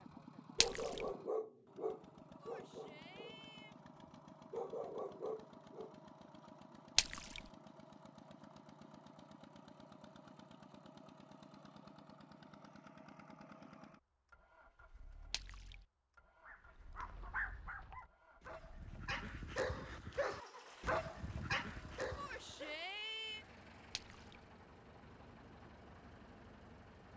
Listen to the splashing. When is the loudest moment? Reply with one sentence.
The loudest moment of the splashing is at 7 seconds.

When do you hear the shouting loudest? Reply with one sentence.
The loudest moment of the shouting is at 23 seconds.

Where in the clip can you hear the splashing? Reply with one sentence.
The splashing can be heard from 0.6 to 1.1 s, from 7.0 to 7.4 s, from 15.3 to 15.8 s and from 23.9 to 24.4 s.